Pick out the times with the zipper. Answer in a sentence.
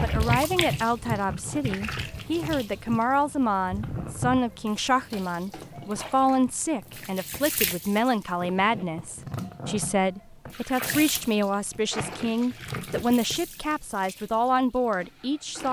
You can't hear the zipper here.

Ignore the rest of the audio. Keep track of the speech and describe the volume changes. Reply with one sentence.
The loudness of the speech stays about the same.